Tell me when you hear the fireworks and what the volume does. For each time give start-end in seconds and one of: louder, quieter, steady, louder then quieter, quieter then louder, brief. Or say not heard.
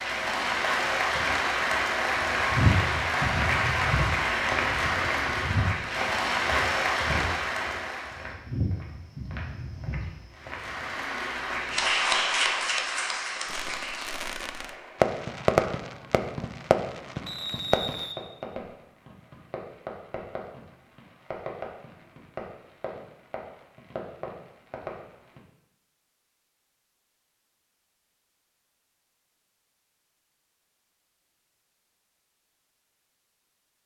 13.4-25.4 quieter.